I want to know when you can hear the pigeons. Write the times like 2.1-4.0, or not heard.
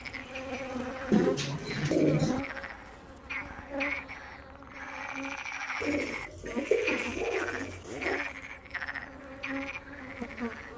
1.1-2.4, 5.8-8.2.